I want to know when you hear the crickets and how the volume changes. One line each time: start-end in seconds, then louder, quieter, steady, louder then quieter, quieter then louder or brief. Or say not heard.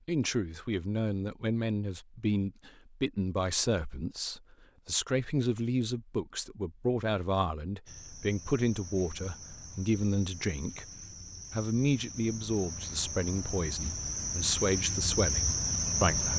7.8-16.3 louder.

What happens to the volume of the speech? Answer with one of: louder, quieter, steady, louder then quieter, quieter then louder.
steady.